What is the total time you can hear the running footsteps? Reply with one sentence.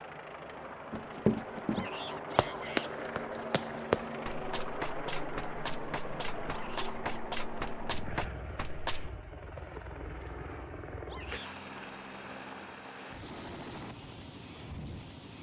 The running footsteps can be heard for 8 seconds in total.